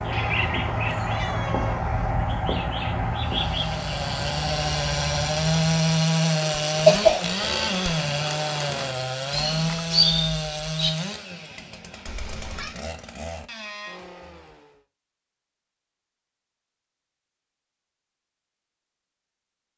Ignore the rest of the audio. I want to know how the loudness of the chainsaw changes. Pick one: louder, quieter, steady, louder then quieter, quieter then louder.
quieter.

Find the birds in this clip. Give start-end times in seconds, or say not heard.
0.0-11.0.